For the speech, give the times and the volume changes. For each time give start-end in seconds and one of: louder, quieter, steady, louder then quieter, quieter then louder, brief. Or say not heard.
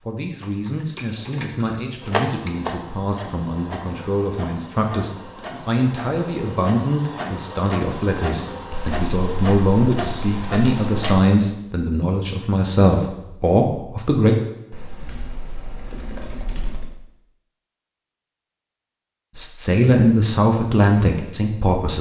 0.1-14.3 louder
19.4-21.9 brief.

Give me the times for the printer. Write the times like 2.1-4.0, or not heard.
2.0-11.2.